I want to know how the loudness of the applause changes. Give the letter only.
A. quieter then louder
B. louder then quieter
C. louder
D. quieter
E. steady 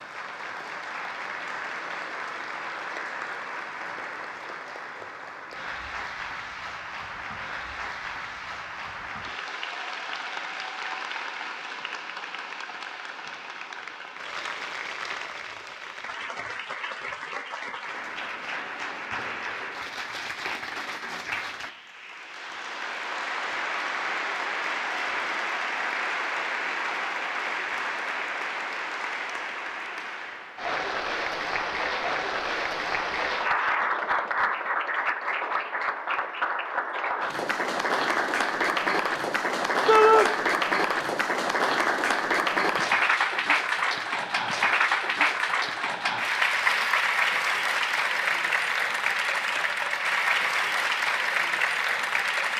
C.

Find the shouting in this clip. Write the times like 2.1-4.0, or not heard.
39.9-40.3.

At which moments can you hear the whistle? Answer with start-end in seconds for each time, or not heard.
not heard.